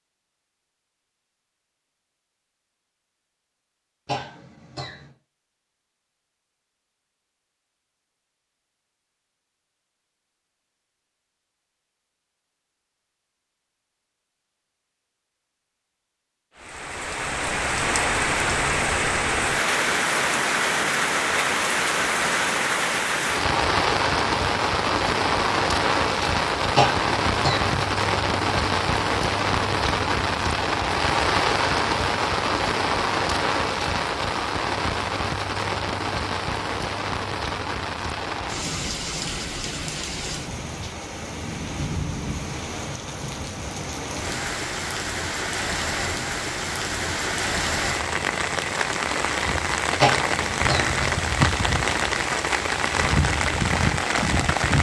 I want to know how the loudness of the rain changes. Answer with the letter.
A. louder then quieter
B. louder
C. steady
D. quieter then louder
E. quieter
D.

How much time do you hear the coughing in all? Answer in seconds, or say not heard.
3 s.